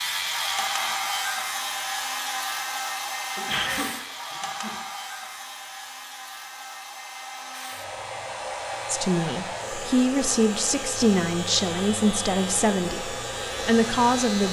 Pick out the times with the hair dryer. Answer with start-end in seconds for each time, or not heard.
0.1-14.4.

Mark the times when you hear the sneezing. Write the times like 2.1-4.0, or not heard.
3.4-4.8.